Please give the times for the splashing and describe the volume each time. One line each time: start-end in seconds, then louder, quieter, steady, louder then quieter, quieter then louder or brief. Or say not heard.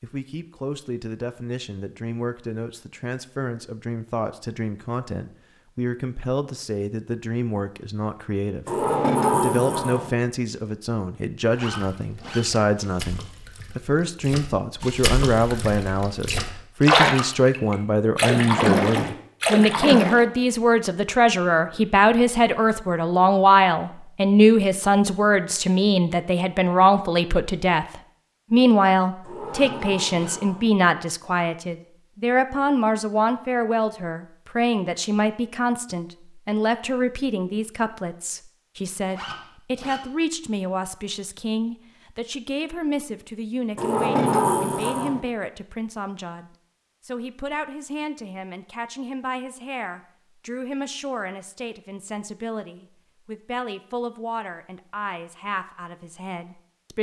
11.8-20.2 louder.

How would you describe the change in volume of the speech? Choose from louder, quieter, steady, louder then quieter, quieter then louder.
louder then quieter.